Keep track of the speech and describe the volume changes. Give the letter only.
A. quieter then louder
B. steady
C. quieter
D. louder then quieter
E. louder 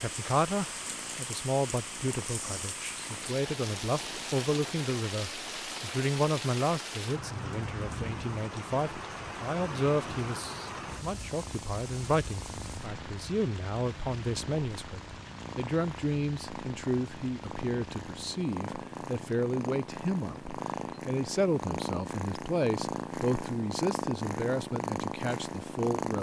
B.